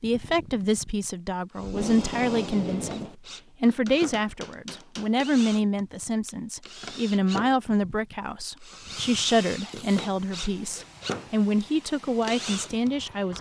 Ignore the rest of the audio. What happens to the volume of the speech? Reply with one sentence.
The loudness of the speech stays about the same.